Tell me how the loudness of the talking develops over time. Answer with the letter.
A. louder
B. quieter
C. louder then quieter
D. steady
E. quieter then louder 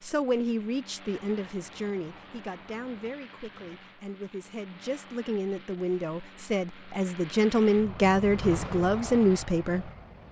E.